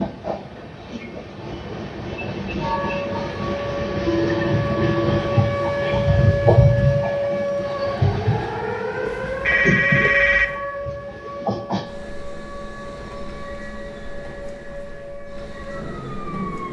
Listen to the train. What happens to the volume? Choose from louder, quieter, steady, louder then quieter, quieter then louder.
louder then quieter.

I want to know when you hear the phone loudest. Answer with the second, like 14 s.
10 s.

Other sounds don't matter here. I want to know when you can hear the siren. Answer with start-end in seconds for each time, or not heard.
2.6-16.6.